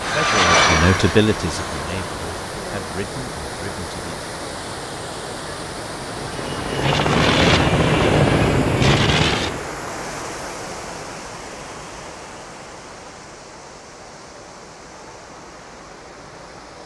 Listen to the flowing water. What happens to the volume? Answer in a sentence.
The volume of the flowing water goes down.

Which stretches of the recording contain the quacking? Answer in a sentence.
The quacking can't be heard in this clip.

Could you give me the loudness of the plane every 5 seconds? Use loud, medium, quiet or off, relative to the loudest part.
loud, loud, off, off.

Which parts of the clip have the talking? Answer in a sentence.
You can hear the talking from 0.1 to 4.2 s.